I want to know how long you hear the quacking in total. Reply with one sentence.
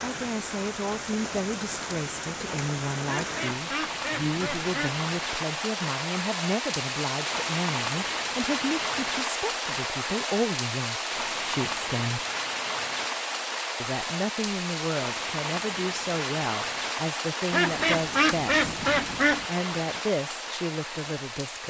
The quacking can be heard for 4 seconds in total.